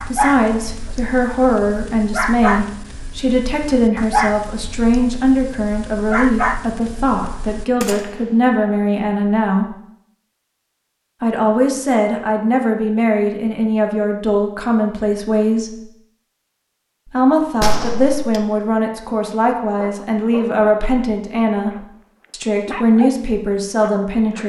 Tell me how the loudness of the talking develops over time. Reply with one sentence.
The loudness of the talking stays about the same.